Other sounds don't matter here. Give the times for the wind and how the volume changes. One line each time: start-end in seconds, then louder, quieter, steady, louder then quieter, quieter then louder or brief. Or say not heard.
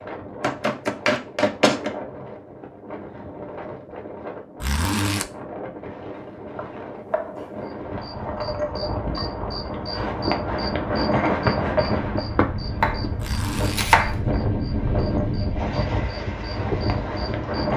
0.0-17.7 louder.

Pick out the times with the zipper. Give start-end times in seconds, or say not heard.
4.6-5.3, 13.2-13.9.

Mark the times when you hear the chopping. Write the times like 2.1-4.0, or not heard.
0.4-1.9, 6.1-7.5, 12.8-14.2.